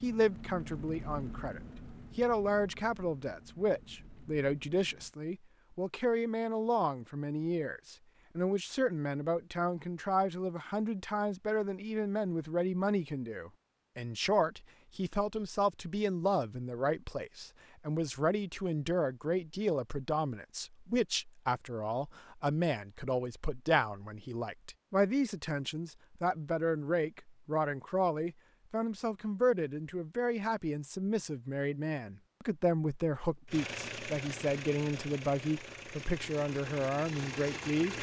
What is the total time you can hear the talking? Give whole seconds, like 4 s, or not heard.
38 s.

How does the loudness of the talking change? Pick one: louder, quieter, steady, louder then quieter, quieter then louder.
steady.